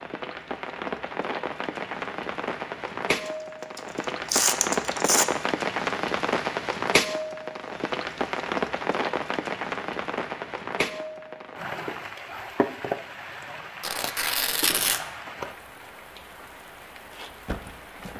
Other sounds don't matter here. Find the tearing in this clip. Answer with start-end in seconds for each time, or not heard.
3.8-5.2, 13.8-15.0.